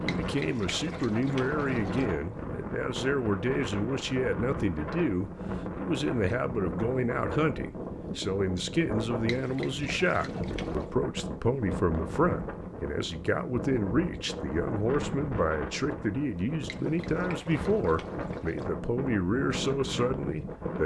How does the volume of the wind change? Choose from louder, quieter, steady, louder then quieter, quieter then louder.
steady.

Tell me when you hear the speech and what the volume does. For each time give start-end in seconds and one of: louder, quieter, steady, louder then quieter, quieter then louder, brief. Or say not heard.
0.0-20.8 steady.